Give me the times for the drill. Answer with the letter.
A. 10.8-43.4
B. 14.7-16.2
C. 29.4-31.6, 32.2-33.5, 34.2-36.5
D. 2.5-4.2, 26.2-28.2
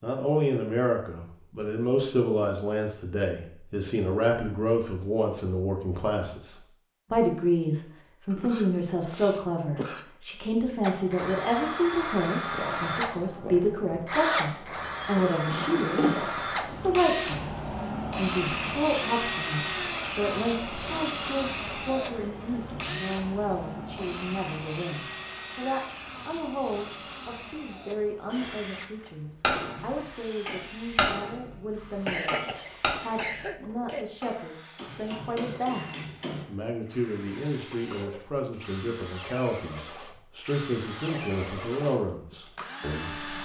A.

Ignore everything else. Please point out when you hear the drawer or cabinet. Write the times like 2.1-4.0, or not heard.
14.7-16.2.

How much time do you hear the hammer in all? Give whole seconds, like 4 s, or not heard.
6 s.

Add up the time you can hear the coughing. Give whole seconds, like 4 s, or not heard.
4 s.